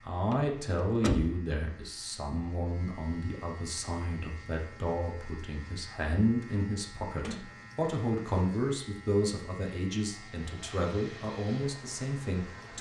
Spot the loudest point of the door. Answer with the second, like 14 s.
1 s.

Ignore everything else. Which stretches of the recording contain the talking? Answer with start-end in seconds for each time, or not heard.
0.0-12.7.